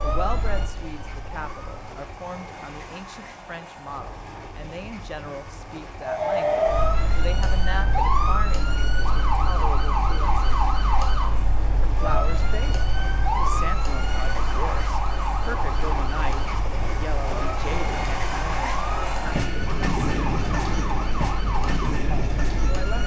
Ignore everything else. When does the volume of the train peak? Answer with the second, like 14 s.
20 s.